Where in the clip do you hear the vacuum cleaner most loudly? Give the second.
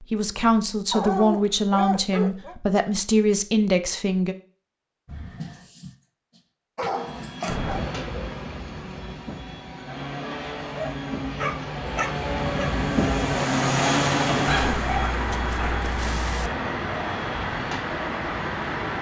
14 s.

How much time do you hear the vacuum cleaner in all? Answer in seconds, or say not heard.
12 s.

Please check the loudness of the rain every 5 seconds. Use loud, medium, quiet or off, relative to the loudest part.
off, medium, loud, loud.